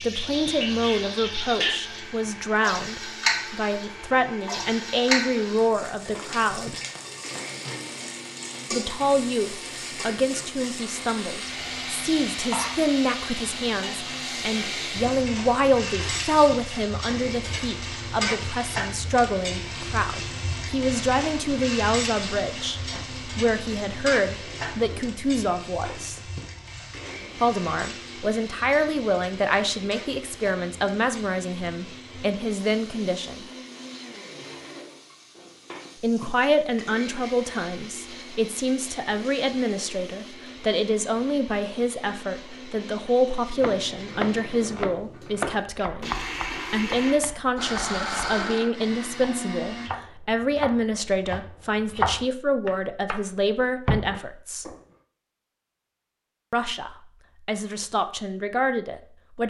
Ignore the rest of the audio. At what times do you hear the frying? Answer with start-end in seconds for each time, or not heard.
0.0-40.4.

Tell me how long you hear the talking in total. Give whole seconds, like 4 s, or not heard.
52 s.